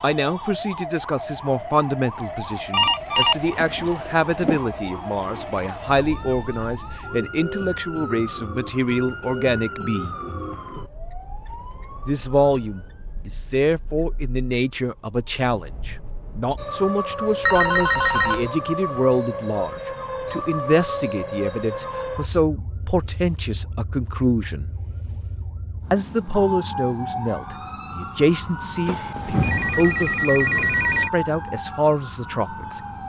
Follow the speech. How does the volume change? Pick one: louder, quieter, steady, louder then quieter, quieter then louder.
steady.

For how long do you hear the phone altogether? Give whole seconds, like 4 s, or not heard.
5 s.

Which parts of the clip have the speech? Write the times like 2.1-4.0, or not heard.
0.0-10.1, 12.1-24.7, 25.9-32.8.